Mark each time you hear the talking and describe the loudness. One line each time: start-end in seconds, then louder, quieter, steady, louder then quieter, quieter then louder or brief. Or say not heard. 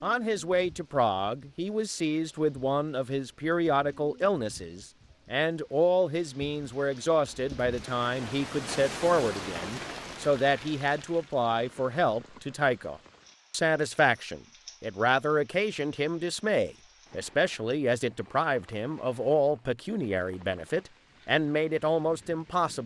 0.0-22.8 steady.